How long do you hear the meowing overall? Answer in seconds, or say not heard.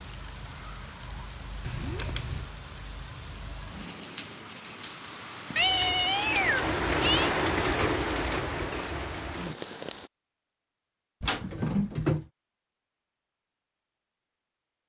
4 s.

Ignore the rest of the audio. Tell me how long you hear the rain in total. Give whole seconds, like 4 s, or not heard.
10 s.